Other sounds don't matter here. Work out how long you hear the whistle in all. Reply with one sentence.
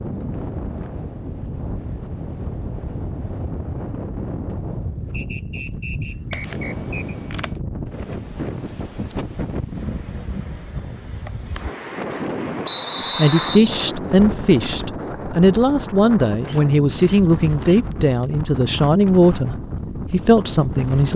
You can hear the whistle for 3 seconds altogether.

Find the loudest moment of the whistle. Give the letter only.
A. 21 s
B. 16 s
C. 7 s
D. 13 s
D.